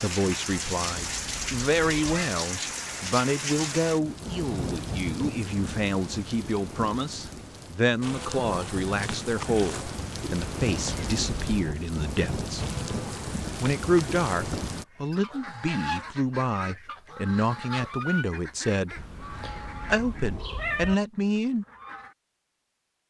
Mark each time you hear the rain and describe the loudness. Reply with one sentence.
The rain can be heard from 0.0 to 14.8 s, getting quieter then louder.